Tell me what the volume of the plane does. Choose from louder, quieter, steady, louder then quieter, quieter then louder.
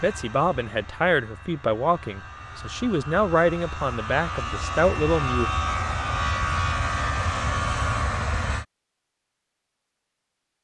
louder.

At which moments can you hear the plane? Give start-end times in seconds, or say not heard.
0.0-8.7.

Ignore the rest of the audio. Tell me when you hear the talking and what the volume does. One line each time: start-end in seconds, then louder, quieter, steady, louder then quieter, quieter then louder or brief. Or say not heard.
0.0-5.5 steady.